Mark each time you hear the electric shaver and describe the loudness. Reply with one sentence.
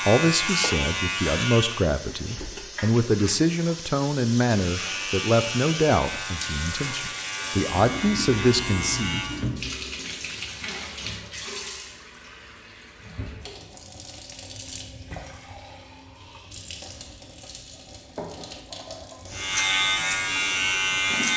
The electric shaver can be heard briefly from 0.0 to 1.9 s; from 4.5 to 9.5 s, at a steady volume; and briefly from 19.3 to 21.3 s.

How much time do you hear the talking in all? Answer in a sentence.
The talking can be heard for 9 seconds in total.